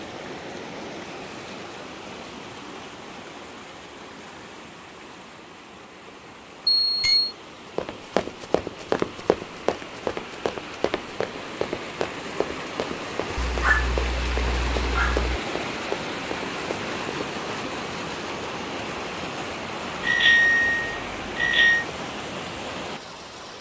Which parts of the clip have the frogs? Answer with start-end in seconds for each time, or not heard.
not heard.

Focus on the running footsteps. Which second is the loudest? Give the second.
9 s.